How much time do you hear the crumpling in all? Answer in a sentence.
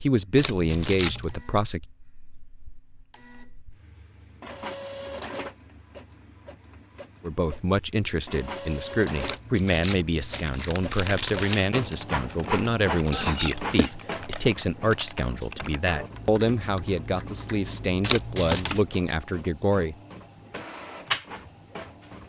You can hear the crumpling for 4 seconds altogether.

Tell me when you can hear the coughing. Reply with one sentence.
The coughing can be heard from 13.1 to 13.9 s.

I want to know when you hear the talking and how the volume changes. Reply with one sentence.
The talking can be heard briefly from 0.0 to 1.8 s; and from 7.2 to 19.9 s, at a steady volume.